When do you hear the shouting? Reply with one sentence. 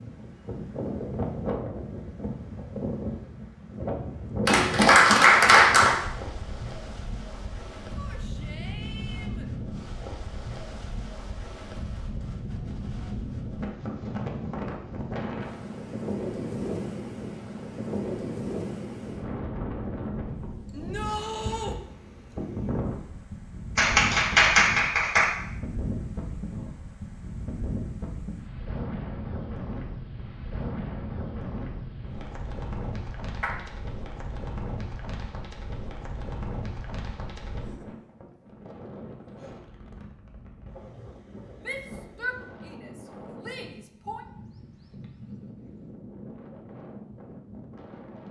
You can hear the shouting from 8.0 to 9.5 s, from 20.7 to 21.8 s and from 41.6 to 44.2 s.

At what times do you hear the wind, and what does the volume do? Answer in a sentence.
You can hear the wind from 0.0 to 48.2 s, getting quieter.